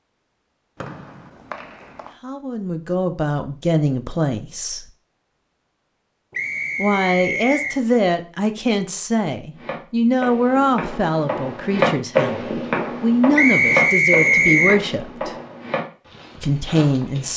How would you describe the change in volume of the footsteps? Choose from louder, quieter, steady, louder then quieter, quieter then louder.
louder then quieter.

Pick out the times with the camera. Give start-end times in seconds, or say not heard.
not heard.